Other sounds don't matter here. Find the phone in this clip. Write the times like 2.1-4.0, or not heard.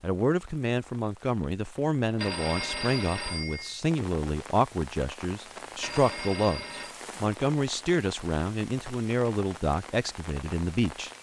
2.1-3.8, 5.8-7.0.